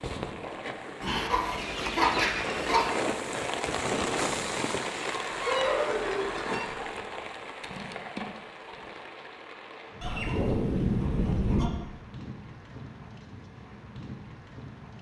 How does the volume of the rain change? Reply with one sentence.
The loudness of the rain goes down.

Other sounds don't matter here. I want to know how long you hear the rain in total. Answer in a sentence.
The rain can be heard for 15 seconds in total.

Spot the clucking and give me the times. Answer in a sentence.
The clucking can be heard from 1.0 to 2.9 s, from 5.1 to 6.9 s and from 10.0 to 11.7 s.